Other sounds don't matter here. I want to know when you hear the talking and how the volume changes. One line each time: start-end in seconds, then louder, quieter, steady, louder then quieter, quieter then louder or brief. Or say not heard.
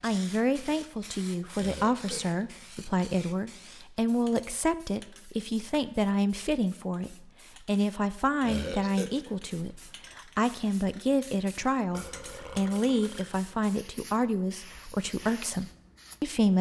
0.0-16.5 steady.